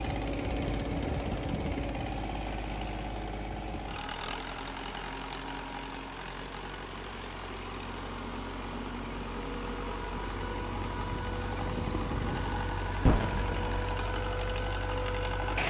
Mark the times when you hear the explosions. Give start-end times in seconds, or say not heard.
13.1-13.9.